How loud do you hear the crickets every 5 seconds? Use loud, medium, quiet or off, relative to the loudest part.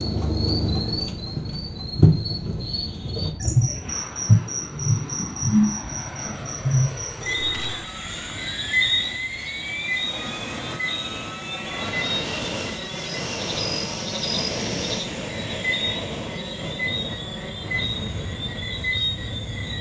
loud, loud, medium, medium.